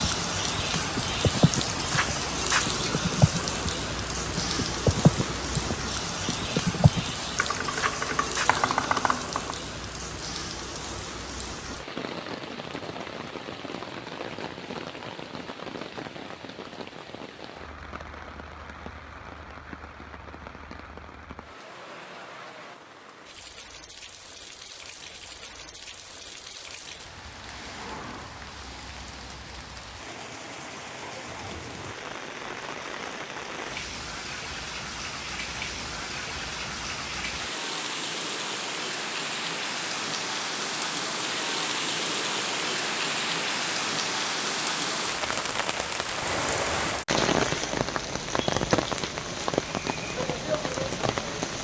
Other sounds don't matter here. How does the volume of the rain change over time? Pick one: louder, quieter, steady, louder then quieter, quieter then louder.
quieter then louder.